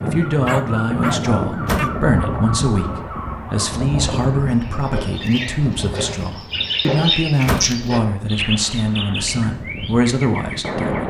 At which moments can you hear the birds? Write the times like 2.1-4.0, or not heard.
0.1-11.0.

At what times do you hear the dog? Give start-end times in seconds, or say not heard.
0.5-1.9.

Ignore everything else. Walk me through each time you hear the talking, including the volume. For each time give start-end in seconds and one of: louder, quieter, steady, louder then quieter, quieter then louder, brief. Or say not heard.
0.0-11.0 steady.